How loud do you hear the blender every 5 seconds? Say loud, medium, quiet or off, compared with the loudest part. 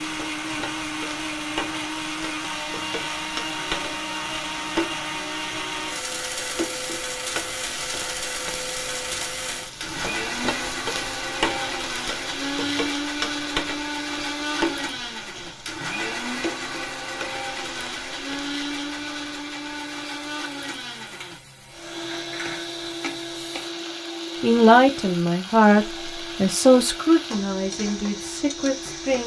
loud, loud, loud, loud, medium, medium.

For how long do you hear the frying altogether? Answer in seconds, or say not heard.
29 s.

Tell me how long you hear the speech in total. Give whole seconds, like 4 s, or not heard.
5 s.